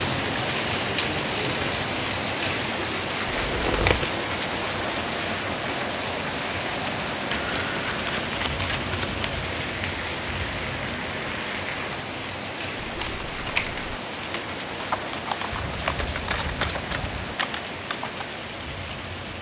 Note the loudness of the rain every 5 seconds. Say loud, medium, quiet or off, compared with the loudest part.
loud, loud, medium, medium.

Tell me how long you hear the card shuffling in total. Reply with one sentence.
You can hear the card shuffling for 5 seconds altogether.